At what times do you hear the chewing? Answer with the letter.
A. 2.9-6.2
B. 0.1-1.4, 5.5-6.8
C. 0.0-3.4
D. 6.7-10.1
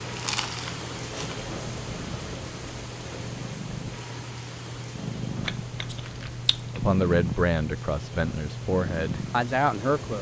B.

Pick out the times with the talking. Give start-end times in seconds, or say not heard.
6.7-10.1.